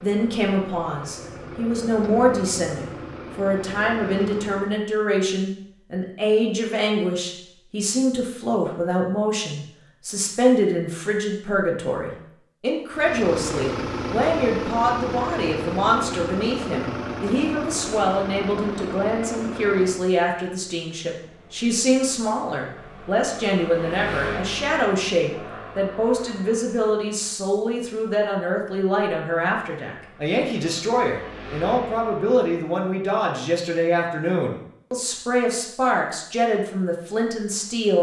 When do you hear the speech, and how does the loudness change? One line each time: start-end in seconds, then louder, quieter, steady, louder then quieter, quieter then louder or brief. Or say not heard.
0.0-37.9 steady.